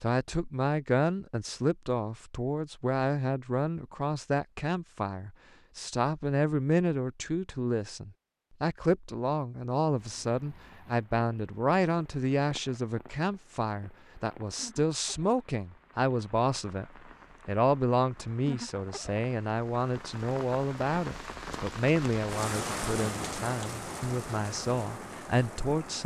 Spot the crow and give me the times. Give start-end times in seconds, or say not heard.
not heard.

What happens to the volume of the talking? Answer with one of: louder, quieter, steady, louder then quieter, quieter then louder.
steady.